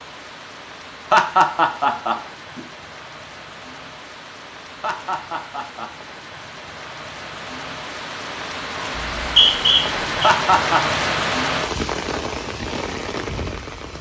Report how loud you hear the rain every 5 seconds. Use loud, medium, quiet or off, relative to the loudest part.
quiet, medium, loud.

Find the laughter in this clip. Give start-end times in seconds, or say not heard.
1.1-2.6, 4.8-5.9, 10.2-10.8.